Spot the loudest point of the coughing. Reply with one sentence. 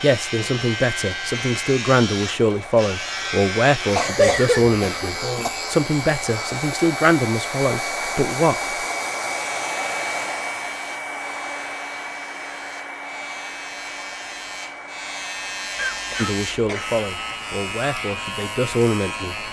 The loudest moment of the coughing is at 4 seconds.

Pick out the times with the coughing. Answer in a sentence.
You can hear the coughing from 4.0 to 5.5 s and from 15.8 to 17.0 s.